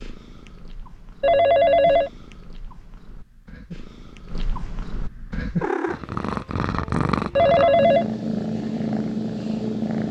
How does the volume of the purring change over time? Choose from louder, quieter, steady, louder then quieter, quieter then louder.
louder.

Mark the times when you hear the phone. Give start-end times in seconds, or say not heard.
1.2-2.1, 7.3-8.1.